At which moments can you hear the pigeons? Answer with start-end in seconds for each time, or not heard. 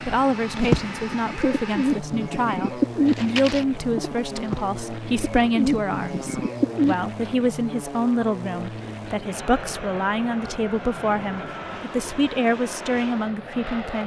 0.6-7.0.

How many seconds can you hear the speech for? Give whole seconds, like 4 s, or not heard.
14 s.